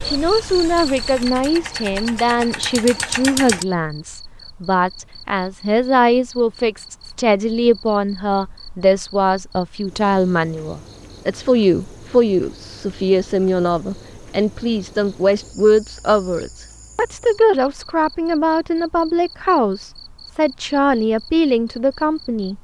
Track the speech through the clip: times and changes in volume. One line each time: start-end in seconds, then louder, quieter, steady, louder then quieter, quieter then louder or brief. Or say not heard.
0.1-22.5 steady.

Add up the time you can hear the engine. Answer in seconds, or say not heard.
4 s.